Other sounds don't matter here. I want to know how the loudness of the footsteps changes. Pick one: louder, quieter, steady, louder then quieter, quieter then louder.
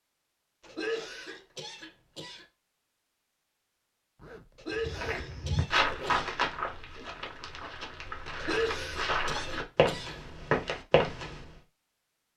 quieter then louder.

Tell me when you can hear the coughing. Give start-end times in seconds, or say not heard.
0.7-2.5, 4.5-6.3, 8.3-10.2.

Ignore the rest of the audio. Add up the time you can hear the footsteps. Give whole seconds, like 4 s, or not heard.
7 s.